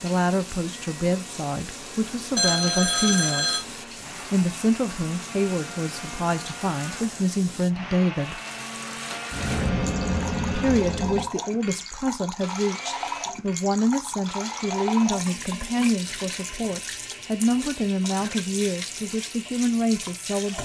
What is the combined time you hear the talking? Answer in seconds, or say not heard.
18 s.